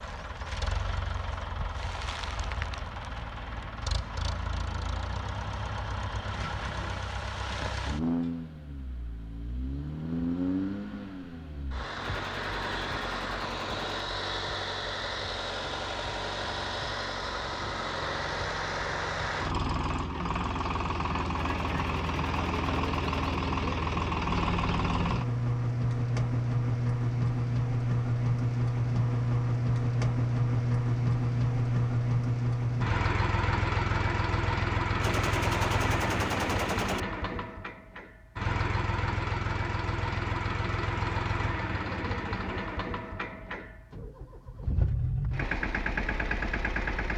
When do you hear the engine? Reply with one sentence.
The engine can be heard from 0.0 to 47.1 s.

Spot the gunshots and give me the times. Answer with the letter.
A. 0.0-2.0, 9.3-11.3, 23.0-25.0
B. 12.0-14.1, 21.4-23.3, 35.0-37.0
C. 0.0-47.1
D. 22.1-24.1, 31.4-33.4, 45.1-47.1
B.